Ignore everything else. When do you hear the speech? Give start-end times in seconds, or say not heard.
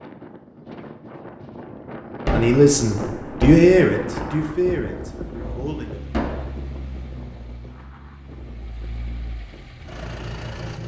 2.3-6.0.